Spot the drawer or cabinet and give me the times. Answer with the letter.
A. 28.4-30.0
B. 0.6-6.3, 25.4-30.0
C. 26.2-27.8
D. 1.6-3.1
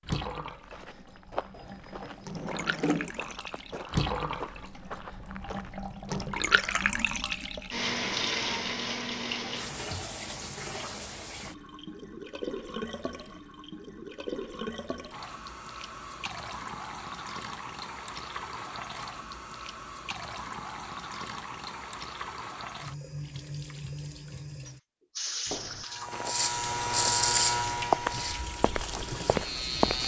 D.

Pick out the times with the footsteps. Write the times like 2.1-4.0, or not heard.
0.6-6.3, 25.4-30.0.